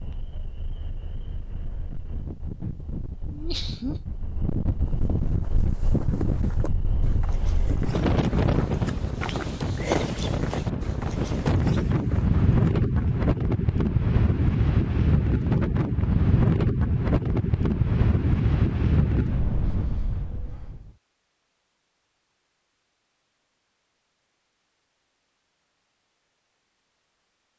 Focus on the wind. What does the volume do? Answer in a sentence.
The volume of the wind goes up.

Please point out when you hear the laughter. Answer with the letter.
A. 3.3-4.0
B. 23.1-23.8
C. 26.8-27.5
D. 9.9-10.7
A.